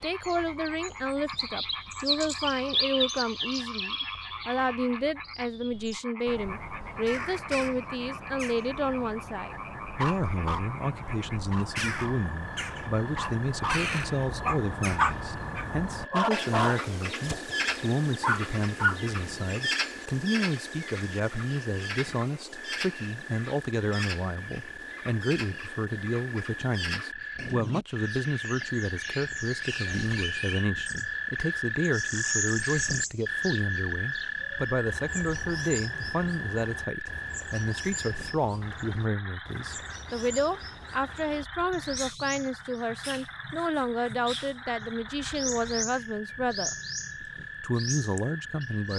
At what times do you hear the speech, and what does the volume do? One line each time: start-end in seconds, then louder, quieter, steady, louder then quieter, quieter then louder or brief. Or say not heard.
0.0-46.8 steady
47.6-48.9 brief.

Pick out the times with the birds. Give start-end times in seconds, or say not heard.
0.0-48.9.